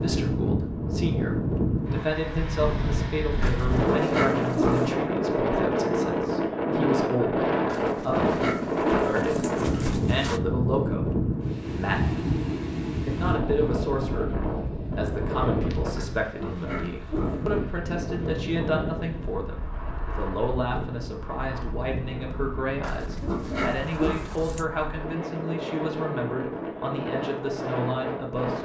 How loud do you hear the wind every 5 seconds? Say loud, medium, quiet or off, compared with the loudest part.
loud, loud, loud, medium, quiet, medium.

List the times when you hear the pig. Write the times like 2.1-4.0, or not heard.
3.4-5.0, 7.7-10.4, 15.9-17.4, 22.8-24.6.